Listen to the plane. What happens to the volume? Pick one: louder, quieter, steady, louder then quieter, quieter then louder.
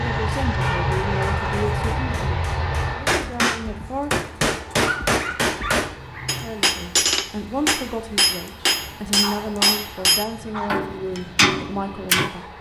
quieter.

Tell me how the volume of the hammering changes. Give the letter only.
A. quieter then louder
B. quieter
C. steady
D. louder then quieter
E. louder
E.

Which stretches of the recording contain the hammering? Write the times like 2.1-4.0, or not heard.
0.5-12.3.